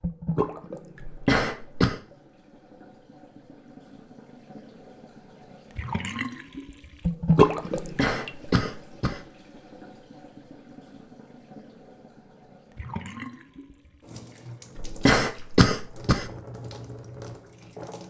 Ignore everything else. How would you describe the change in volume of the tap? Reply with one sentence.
The loudness of the tap goes up, then down.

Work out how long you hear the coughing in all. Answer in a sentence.
The coughing can be heard for 4 seconds in total.